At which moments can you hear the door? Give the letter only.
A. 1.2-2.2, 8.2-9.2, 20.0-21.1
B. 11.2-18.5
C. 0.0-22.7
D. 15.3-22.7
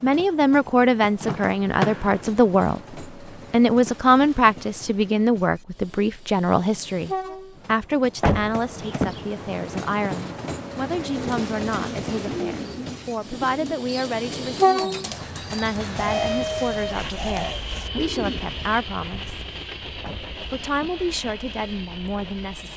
A.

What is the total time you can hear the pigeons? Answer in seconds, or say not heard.
7 s.